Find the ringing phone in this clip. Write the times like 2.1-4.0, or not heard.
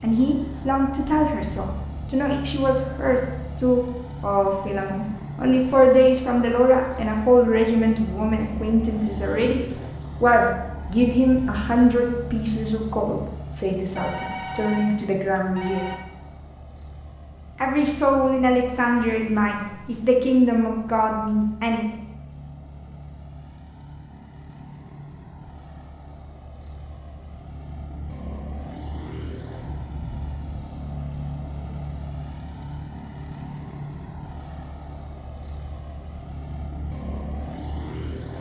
13.9-15.9.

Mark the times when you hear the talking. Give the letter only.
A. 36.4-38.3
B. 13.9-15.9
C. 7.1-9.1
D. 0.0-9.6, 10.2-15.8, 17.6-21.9
D.